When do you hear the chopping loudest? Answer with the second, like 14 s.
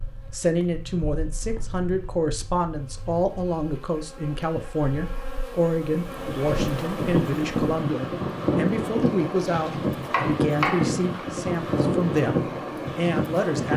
11 s.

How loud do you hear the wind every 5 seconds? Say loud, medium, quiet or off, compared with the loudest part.
off, loud, loud.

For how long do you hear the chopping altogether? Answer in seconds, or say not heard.
2 s.